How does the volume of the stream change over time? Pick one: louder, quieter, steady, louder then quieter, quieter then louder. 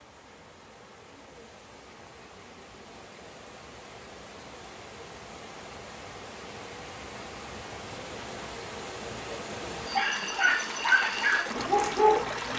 louder.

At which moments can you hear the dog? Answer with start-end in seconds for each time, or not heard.
9.8-12.5.